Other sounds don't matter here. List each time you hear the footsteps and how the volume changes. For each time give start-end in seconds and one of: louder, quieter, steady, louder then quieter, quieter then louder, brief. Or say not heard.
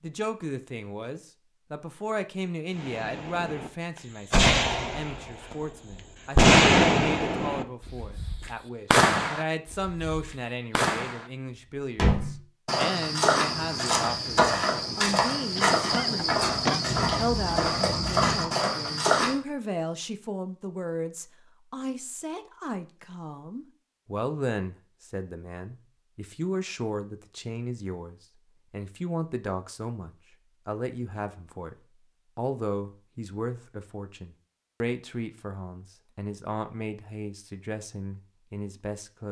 11.9-19.4 steady.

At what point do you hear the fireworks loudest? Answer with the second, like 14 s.
7 s.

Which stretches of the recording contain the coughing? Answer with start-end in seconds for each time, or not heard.
15.6-16.8.